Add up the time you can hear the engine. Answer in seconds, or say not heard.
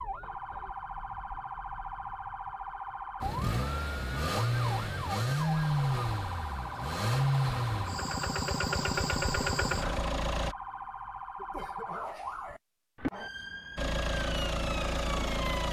9 s.